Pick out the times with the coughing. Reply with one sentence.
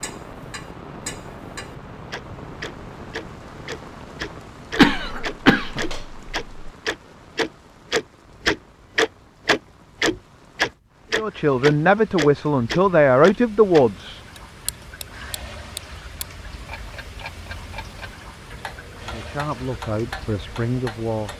The coughing can be heard from 4.8 to 6.7 s.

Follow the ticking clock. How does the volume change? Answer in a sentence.
The volume of the ticking clock goes up, then down.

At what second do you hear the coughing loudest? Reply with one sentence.
The volume of the coughing peaks at 5 seconds.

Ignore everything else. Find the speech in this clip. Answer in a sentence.
The speech can be heard from 11.2 to 14.2 s and from 19.0 to 21.3 s.